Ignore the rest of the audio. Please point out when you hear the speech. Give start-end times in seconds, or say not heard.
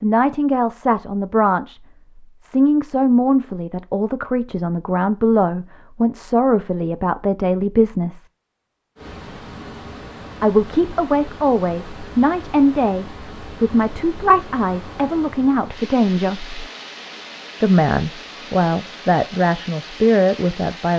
0.0-1.8, 2.4-8.2, 10.4-16.6, 17.6-20.9.